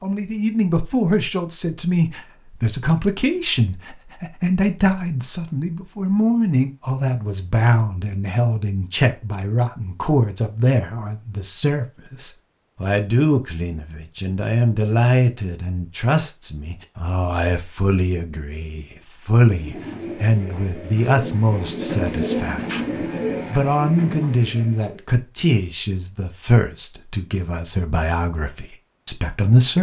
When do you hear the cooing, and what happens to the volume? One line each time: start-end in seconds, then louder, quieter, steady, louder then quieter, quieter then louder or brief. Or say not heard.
19.4-25.1 louder then quieter.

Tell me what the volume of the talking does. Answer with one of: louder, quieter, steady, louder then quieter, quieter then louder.
steady.